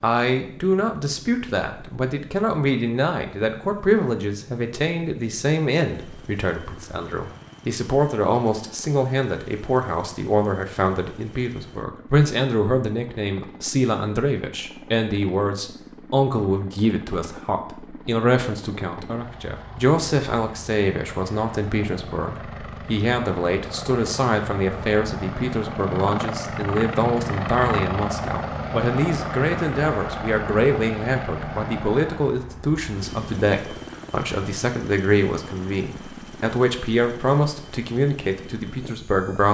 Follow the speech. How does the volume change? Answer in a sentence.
The volume of the speech stays about the same.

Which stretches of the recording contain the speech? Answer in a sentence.
You can hear the speech from 0.0 to 39.4 s.